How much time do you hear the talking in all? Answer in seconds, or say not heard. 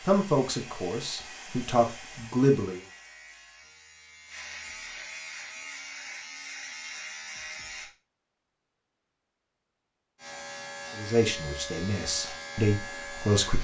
5 s.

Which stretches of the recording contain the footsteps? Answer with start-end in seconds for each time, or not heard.
not heard.